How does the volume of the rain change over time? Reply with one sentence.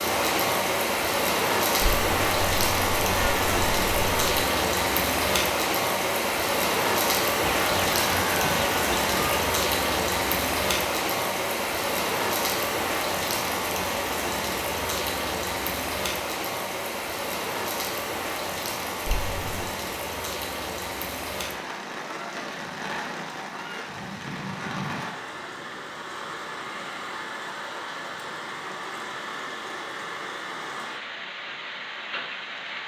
The volume of the rain goes down.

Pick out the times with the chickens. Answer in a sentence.
The chickens can be heard from 7.4 to 9.4 s.